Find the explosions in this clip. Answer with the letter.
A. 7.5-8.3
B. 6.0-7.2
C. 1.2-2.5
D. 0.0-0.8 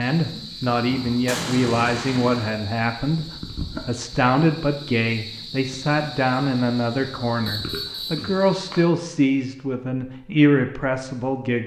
C.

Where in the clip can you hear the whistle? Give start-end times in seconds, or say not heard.
7.5-8.3.